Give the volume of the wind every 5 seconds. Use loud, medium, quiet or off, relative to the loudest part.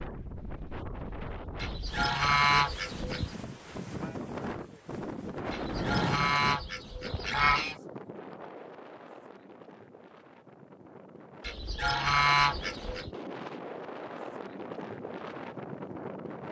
loud, loud, medium, loud.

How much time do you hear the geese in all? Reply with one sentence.
The geese can be heard for 6 seconds in total.